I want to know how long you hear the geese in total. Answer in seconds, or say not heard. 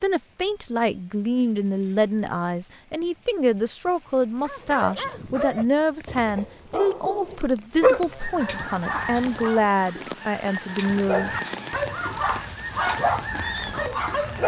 6 s.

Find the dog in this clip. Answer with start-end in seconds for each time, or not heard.
4.4-9.8, 10.8-14.4.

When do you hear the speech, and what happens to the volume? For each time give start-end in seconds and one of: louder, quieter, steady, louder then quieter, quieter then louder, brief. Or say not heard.
0.0-11.3 steady.